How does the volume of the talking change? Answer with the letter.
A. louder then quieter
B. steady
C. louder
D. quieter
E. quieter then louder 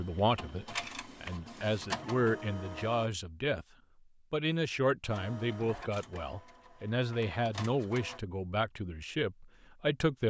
B.